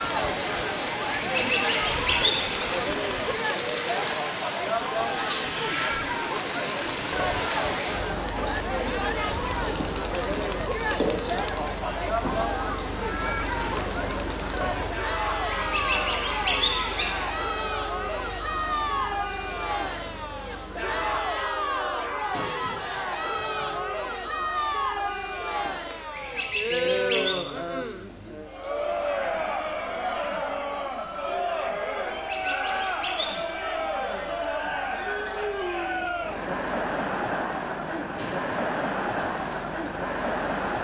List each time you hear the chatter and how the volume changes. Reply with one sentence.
You can hear the chatter from 0.0 to 40.7 s, at a steady volume.